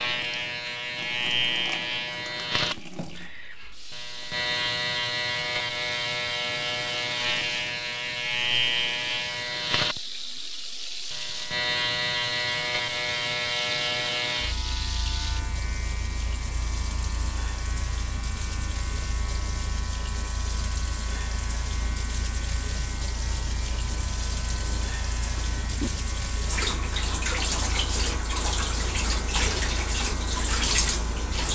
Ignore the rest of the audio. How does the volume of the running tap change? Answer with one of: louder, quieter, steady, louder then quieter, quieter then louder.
louder.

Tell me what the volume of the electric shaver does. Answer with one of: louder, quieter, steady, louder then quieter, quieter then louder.
quieter.